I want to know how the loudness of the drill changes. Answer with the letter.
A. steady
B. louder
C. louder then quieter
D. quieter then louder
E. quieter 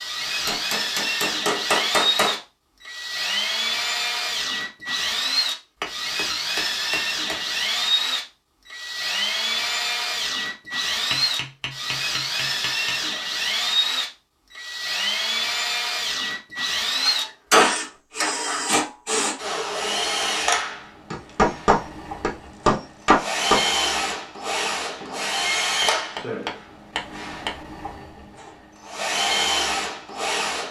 A.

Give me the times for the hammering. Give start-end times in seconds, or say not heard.
0.5-2.4, 5.8-7.5, 11.1-12.9, 17.0-18.9, 21.1-23.6, 25.8-27.5.